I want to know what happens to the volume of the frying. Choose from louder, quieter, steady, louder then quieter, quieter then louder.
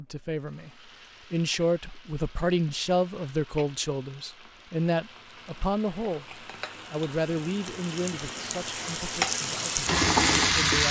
louder.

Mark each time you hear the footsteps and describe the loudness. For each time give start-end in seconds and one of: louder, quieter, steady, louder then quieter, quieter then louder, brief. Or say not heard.
not heard.